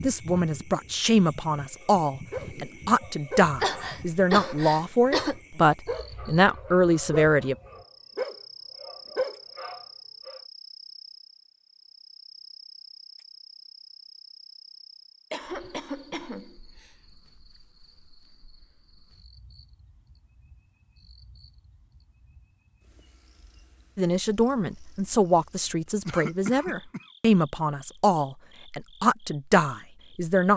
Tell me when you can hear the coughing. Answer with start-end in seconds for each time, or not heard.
3.5-5.4, 15.3-16.9, 26.1-27.1.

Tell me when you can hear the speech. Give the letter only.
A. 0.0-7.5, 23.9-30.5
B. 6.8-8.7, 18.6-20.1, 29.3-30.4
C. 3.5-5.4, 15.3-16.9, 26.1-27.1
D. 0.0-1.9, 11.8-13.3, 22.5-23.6
A.